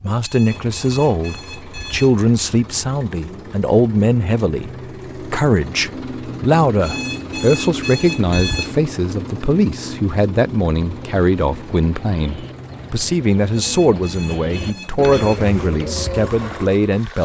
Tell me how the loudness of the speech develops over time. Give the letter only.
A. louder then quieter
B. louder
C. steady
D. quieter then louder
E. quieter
C.